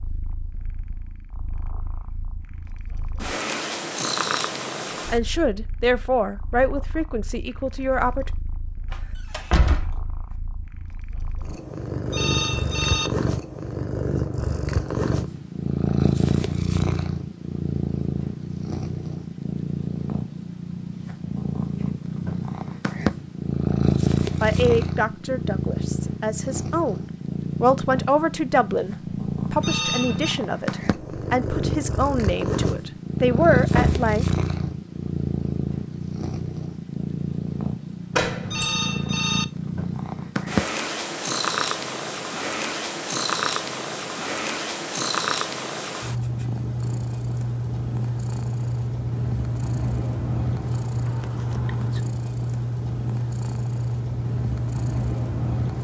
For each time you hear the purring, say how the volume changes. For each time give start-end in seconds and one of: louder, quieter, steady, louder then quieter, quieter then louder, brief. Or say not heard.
0.0-55.7 louder.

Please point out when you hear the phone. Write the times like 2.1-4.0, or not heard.
12.1-13.1, 29.6-30.4, 38.4-39.5.